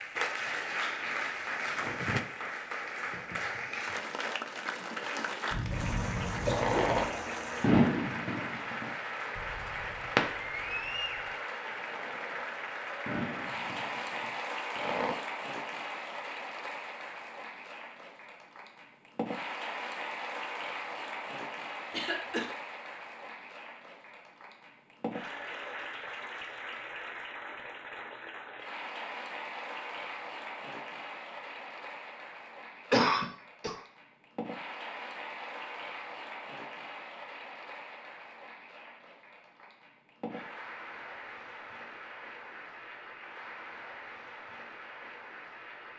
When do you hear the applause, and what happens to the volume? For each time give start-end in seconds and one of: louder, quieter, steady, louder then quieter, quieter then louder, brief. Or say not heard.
0.0-45.9 quieter.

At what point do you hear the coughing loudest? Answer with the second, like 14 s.
33 s.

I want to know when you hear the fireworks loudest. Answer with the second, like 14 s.
8 s.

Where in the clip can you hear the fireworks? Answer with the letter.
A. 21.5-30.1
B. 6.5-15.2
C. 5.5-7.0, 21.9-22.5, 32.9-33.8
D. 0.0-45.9
B.